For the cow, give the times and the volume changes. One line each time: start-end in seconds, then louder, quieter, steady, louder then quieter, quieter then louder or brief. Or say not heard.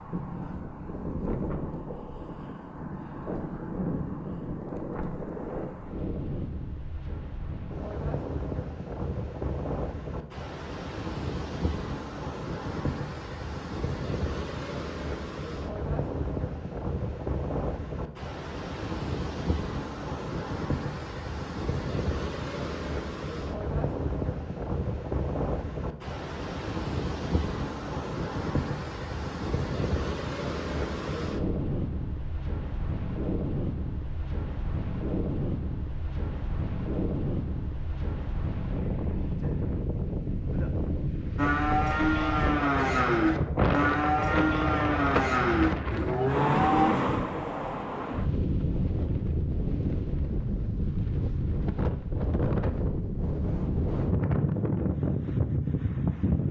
41.4-46.9 steady.